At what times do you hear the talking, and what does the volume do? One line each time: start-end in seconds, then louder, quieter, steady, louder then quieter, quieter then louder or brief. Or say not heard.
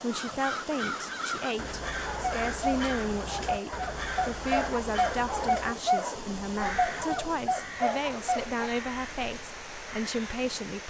0.0-10.8 steady.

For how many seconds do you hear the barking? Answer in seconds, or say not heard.
7 s.